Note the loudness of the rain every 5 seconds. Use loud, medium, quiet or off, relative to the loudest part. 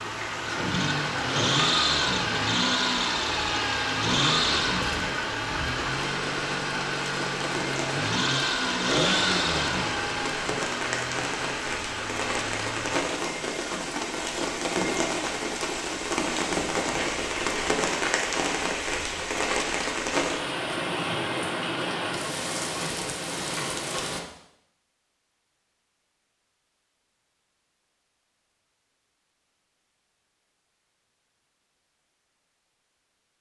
medium, medium, loud, loud, loud, off, off.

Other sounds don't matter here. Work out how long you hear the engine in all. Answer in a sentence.
The engine can be heard for 13 seconds in total.